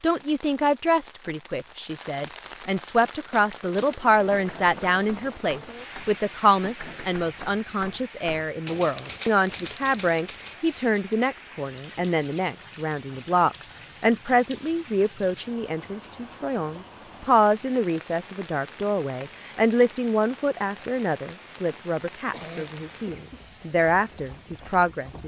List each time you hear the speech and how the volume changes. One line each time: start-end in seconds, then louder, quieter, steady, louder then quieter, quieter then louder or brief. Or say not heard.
0.0-25.2 steady.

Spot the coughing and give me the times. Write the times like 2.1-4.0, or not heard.
22.3-23.4.